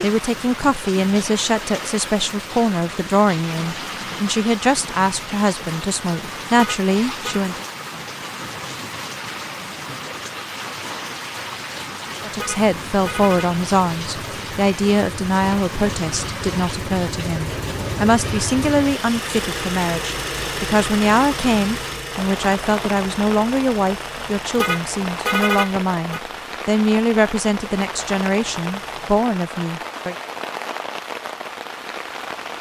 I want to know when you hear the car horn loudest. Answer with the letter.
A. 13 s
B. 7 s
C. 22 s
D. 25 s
D.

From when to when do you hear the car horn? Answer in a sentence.
You can hear the car horn from 6.5 to 7.4 s, from 12.3 to 13.6 s and from 24.6 to 26.2 s.